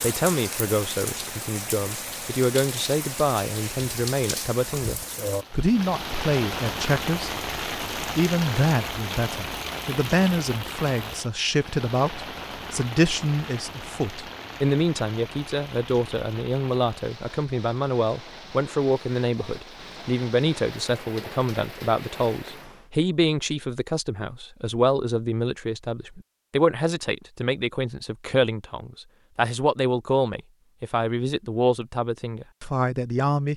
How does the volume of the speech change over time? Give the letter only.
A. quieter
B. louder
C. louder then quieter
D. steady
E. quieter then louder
D.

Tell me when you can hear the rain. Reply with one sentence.
The rain can be heard from 0.0 to 22.9 s.